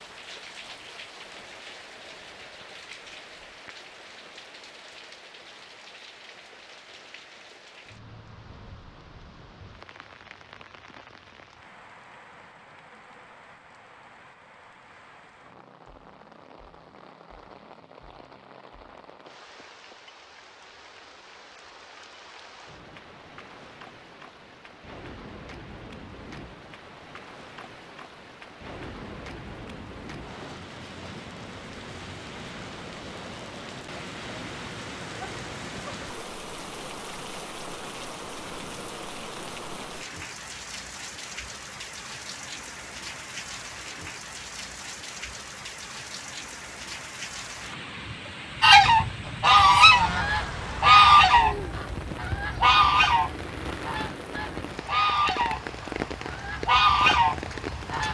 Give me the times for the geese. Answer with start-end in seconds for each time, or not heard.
48.6-58.0.